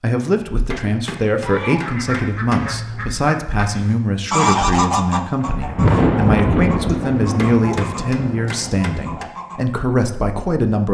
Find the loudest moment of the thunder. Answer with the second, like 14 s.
6 s.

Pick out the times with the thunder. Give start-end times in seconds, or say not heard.
5.4-9.2.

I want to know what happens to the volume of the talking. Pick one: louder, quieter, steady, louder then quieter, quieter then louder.
steady.